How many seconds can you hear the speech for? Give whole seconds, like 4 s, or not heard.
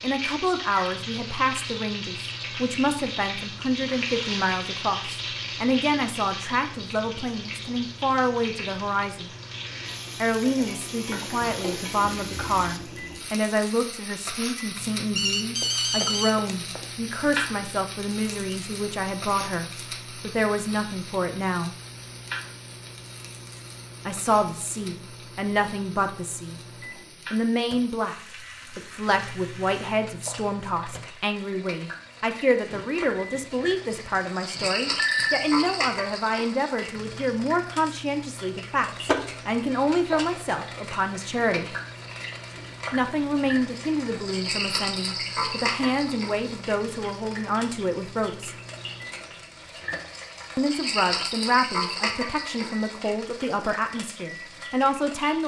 48 s.